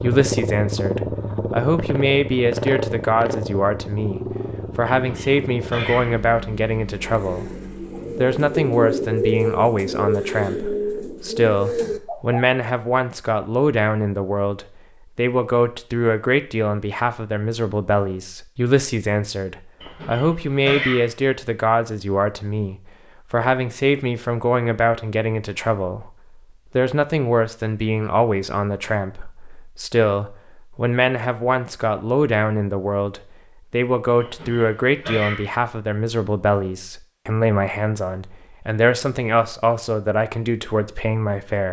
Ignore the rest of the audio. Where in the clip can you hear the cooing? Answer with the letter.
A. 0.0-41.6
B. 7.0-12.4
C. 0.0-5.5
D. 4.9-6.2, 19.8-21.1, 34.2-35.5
B.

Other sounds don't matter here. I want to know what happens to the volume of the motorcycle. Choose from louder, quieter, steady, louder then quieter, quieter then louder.
quieter.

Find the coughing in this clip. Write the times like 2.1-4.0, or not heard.
4.9-6.2, 19.8-21.1, 34.2-35.5.